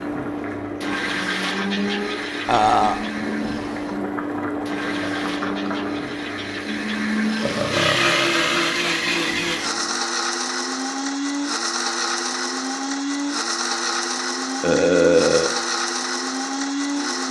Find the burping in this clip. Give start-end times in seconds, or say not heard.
2.5-3.0, 7.4-8.8, 14.6-15.6.